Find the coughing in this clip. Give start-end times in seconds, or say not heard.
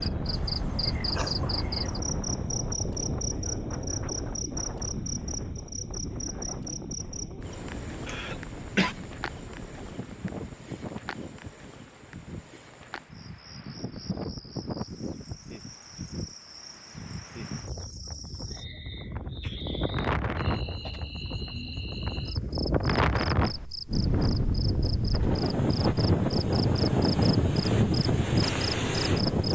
8.1-8.9.